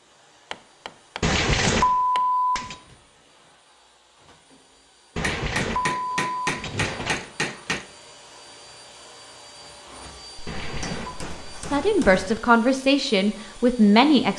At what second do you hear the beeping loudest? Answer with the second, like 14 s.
2 s.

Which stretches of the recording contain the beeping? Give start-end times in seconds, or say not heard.
1.2-2.8, 5.2-7.2, 10.4-11.2.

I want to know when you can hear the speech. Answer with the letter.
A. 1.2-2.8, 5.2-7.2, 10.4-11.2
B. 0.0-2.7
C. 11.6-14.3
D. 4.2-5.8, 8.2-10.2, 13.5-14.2
C.